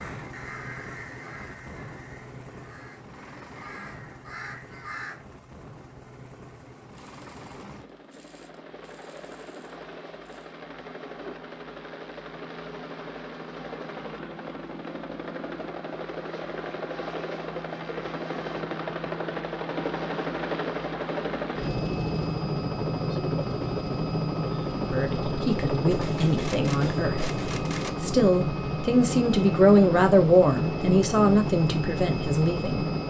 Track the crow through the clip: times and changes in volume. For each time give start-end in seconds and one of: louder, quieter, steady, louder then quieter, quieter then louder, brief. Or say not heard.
0.0-5.2 quieter then louder.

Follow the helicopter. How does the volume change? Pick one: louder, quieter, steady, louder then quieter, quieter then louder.
louder.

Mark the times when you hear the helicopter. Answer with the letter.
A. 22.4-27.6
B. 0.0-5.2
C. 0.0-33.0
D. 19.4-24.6
C.